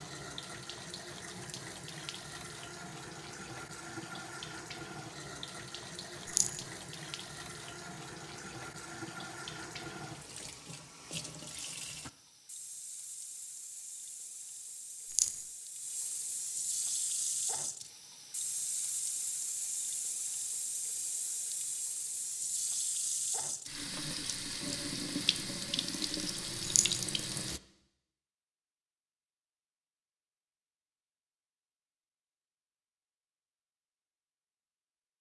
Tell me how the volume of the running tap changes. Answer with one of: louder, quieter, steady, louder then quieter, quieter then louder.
louder.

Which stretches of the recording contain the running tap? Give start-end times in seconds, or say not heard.
0.0-27.6.